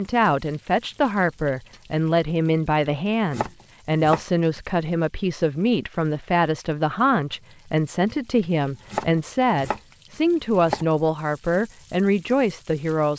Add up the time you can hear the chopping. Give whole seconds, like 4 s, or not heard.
4 s.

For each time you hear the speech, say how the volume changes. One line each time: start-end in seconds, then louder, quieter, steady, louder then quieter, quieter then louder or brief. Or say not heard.
0.0-13.1 steady.